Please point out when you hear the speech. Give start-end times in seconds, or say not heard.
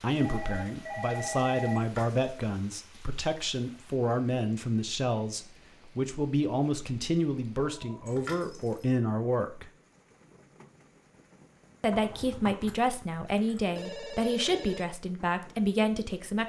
0.0-9.7, 11.8-16.4.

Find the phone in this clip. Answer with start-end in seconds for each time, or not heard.
0.2-1.9, 7.6-8.1, 13.8-14.9.